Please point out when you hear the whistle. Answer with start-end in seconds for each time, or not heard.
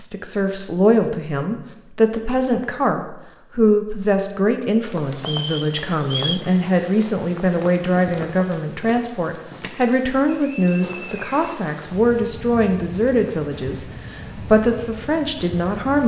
5.2-6.5, 10.3-11.6.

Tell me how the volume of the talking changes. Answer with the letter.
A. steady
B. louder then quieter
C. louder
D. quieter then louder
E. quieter
A.